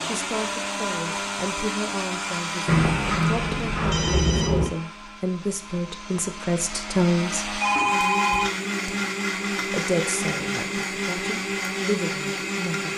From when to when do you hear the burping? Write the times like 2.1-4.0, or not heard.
not heard.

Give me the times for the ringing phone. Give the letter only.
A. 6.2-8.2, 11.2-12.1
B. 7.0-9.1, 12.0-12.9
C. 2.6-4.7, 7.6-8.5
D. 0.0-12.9
C.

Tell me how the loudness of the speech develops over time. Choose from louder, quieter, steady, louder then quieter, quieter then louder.
louder then quieter.